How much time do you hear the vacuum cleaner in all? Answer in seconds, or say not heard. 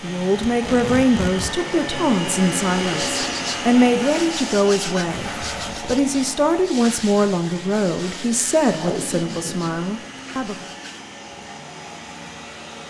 13 s.